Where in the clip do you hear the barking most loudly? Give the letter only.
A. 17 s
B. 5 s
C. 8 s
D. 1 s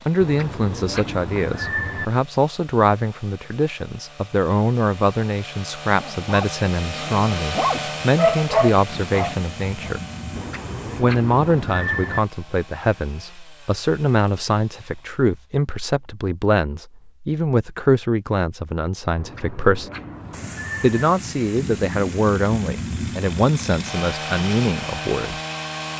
C.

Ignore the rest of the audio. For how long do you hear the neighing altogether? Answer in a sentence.
The neighing can be heard for 6 seconds in total.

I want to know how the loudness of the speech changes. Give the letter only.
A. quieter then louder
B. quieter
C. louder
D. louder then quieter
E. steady
E.